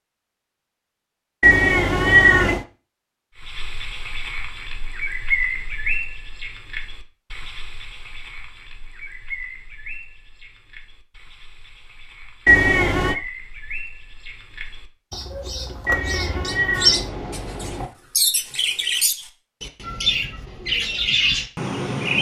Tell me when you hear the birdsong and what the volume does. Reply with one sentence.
You can hear the birdsong from 3.4 to 22.1 s, getting quieter then louder.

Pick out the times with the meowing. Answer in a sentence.
You can hear the meowing from 1.4 to 2.6 s, from 12.4 to 13.2 s and from 15.8 to 17.9 s.